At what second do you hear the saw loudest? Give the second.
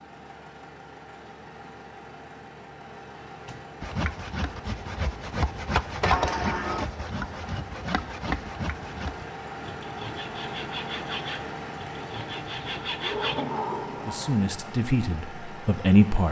6 s.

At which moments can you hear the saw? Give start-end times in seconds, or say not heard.
3.8-13.4.